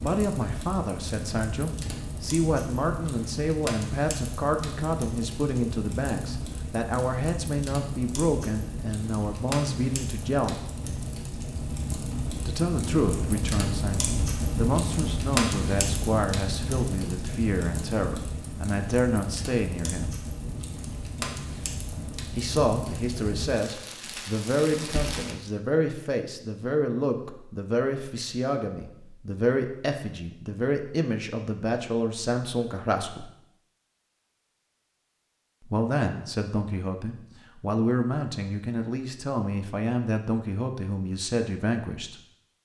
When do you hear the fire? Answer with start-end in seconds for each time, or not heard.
0.0-25.4.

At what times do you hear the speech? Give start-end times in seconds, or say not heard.
0.0-10.7, 12.3-20.1, 22.3-33.3, 35.6-42.1.